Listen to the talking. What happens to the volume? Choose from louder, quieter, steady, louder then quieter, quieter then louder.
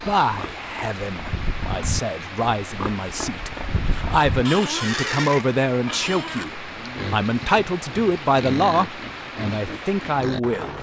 louder.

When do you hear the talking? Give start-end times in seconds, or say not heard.
0.0-10.7.